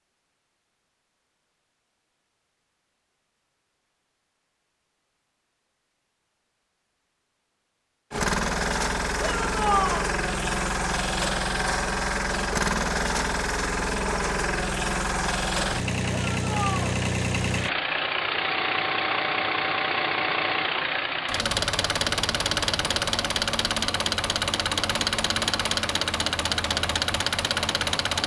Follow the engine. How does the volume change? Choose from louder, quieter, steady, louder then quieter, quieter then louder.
steady.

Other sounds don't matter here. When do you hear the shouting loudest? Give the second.
10 s.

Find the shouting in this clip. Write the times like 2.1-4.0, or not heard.
9.2-10.1, 16.1-16.9.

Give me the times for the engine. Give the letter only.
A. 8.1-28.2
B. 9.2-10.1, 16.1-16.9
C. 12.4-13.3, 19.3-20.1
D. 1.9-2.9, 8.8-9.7
A.